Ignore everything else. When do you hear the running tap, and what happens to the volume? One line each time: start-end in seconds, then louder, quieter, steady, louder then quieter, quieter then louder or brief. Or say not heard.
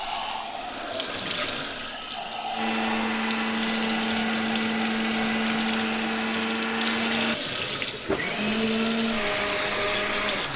0.0-10.5 steady.